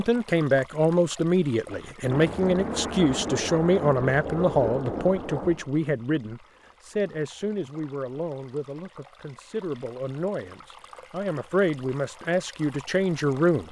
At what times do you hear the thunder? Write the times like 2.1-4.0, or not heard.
2.0-5.7.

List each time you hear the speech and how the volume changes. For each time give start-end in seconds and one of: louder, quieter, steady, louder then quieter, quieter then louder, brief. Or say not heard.
0.0-13.6 quieter then louder.